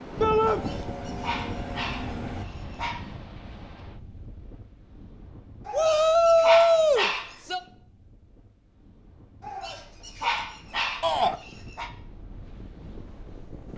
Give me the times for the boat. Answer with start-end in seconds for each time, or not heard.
0.0-2.5.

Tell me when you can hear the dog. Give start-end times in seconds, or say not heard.
0.5-3.0, 5.7-7.4, 9.4-11.9.